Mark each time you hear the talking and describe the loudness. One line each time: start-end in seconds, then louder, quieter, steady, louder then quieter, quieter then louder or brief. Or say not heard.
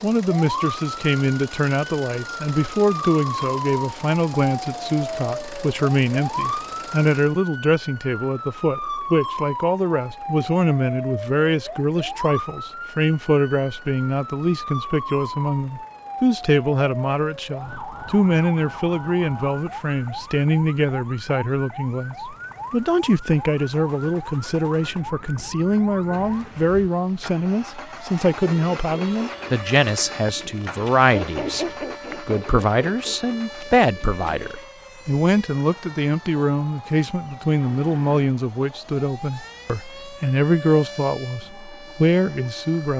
0.0-42.9 steady.